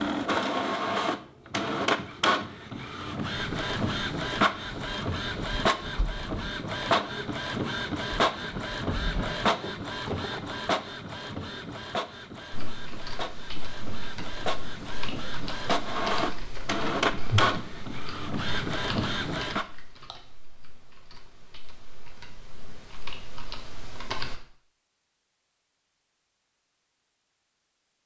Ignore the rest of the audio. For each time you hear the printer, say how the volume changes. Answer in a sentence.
You can hear the printer from 0.0 to 19.6 s, getting quieter then louder.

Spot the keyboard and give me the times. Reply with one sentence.
The keyboard can be heard from 12.5 to 24.4 s.